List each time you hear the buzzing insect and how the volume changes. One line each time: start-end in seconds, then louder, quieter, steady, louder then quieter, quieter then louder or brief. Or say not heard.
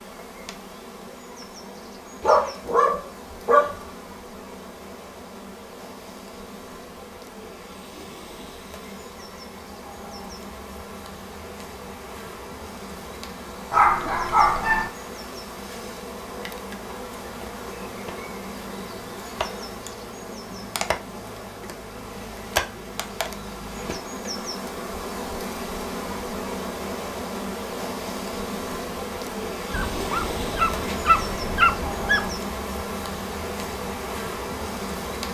0.0-35.2 louder.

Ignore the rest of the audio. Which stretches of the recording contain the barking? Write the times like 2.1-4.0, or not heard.
2.2-3.8, 13.7-14.9, 29.7-32.4.